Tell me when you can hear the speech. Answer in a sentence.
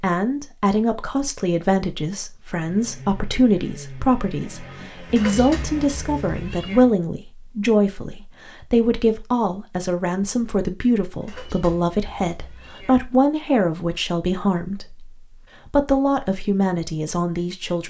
The speech can be heard from 0.0 to 17.8 s.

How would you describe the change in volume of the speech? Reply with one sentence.
The loudness of the speech stays about the same.